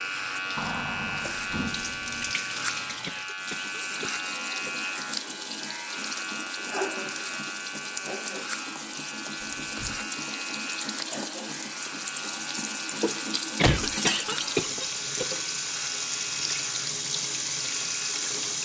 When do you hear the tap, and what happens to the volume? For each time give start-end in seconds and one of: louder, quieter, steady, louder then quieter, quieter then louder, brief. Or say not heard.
0.0-18.6 louder.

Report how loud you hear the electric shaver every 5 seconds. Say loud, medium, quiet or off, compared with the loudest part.
loud, loud, medium, medium.